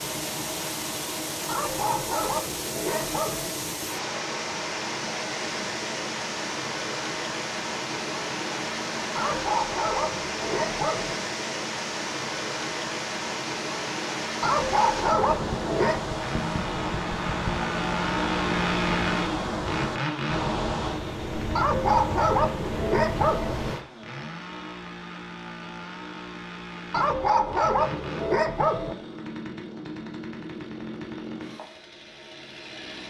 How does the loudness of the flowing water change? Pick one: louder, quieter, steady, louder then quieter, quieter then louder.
steady.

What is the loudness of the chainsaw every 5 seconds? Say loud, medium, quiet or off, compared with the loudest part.
off, off, off, loud, medium, medium, medium.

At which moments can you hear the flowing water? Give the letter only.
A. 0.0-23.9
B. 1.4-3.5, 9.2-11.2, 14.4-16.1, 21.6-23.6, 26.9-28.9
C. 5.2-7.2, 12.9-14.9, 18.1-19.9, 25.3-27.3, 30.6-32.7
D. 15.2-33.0
A.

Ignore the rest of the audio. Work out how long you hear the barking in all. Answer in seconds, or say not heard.
10 s.